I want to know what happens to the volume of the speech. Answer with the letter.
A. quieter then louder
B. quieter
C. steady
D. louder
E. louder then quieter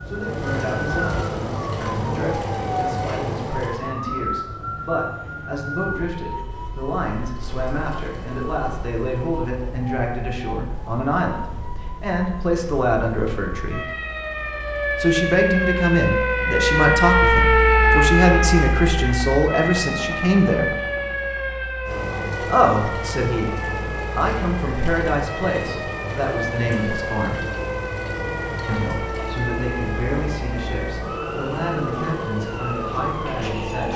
E.